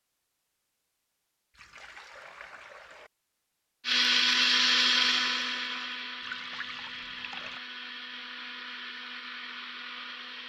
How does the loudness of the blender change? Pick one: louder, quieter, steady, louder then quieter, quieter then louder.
quieter.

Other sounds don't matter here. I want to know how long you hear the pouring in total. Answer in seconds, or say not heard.
3 s.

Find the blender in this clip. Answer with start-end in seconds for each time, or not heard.
3.9-10.4.